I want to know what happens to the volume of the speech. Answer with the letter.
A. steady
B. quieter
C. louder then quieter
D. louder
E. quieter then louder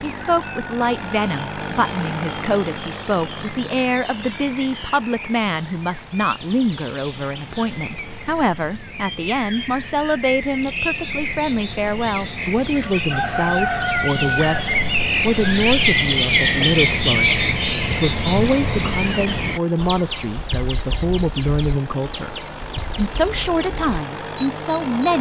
A.